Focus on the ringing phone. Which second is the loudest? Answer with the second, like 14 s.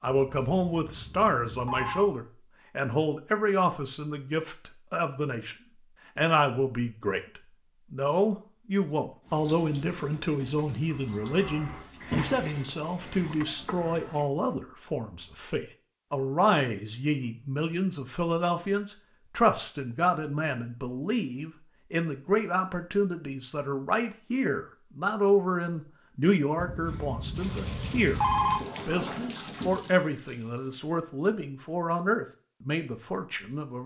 28 s.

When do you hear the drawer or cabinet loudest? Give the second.
12 s.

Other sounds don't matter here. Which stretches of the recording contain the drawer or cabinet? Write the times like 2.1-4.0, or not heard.
12.0-13.4, 28.5-29.9.